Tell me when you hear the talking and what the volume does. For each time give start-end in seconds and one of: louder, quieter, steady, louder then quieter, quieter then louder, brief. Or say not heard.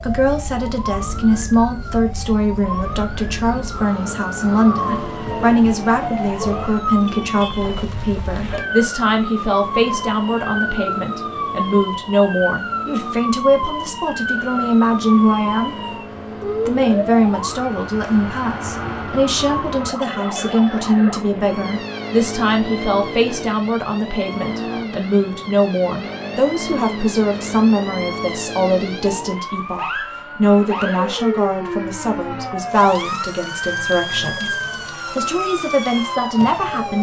0.0-15.8 steady
16.6-36.9 steady.